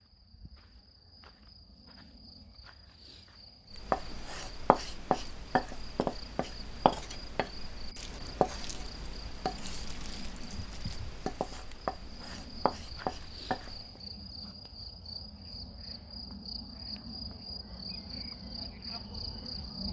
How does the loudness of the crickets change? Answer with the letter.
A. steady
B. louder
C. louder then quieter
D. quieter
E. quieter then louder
B.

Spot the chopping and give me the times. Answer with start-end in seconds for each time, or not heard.
3.7-14.0.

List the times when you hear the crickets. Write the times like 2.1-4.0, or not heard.
0.0-19.8.